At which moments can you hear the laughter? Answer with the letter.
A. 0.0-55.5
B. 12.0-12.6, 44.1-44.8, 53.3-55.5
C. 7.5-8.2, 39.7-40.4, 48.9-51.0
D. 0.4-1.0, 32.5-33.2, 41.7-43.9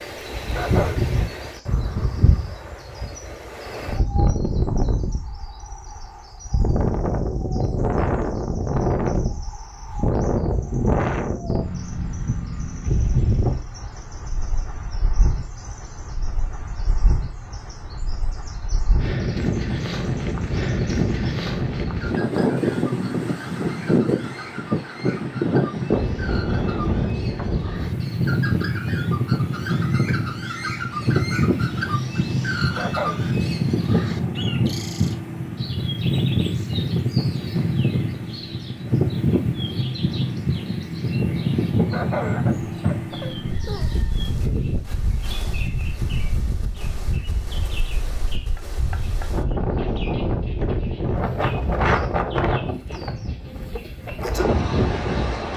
D.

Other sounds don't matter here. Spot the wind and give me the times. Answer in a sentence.
You can hear the wind from 0.0 to 55.5 s.